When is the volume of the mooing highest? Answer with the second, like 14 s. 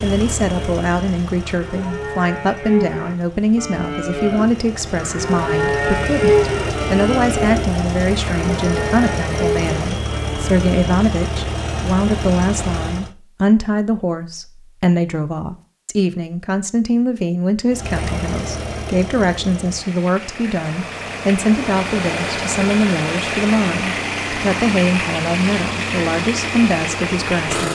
6 s.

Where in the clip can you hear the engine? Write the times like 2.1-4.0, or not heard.
0.0-13.2, 17.7-27.6.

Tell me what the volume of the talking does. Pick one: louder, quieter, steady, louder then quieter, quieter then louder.
steady.